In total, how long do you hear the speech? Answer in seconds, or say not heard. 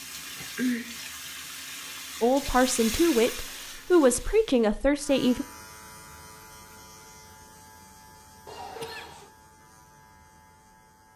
3 s.